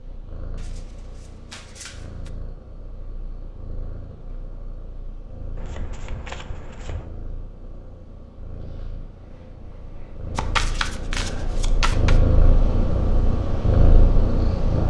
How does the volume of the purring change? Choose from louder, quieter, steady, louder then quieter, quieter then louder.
louder.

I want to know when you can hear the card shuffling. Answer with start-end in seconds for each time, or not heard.
0.6-2.3, 5.5-7.1, 10.3-12.2.